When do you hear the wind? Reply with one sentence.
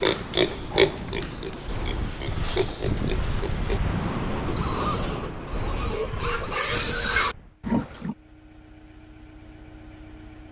You can hear the wind from 0.0 to 7.6 s.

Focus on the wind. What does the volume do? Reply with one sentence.
The loudness of the wind goes up, then down.